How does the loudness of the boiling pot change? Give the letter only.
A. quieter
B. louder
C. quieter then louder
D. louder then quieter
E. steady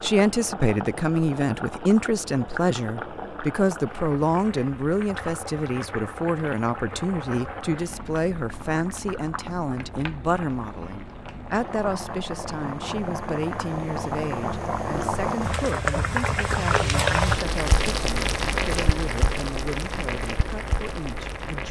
B.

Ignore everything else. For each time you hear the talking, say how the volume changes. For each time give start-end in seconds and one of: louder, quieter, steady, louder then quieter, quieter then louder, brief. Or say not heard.
0.0-21.6 quieter.